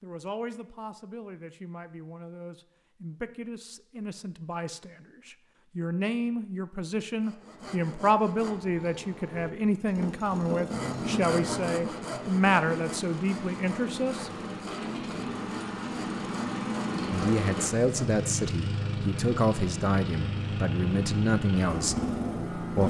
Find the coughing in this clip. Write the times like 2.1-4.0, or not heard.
not heard.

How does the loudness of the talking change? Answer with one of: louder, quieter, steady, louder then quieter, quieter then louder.
louder.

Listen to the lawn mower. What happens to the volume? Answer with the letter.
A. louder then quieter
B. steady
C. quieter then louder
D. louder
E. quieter
D.